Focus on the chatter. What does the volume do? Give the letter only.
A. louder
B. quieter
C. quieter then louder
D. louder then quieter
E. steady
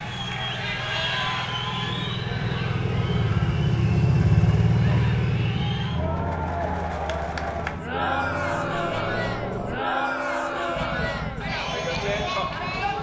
C.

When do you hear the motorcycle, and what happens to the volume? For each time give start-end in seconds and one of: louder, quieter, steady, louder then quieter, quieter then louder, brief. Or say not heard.
0.0-12.9 louder then quieter.